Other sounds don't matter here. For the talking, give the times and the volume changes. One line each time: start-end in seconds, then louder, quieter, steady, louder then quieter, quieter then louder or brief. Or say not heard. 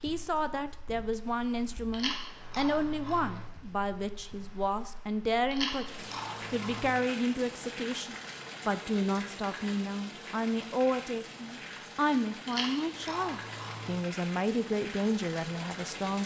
0.0-16.2 steady.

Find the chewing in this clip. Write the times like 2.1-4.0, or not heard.
1.9-3.5, 5.5-7.0, 12.4-14.0.